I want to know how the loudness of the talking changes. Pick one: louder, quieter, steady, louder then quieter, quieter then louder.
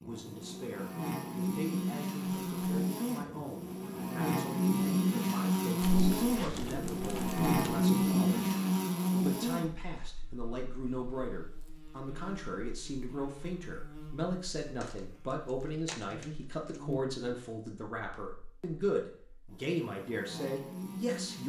louder.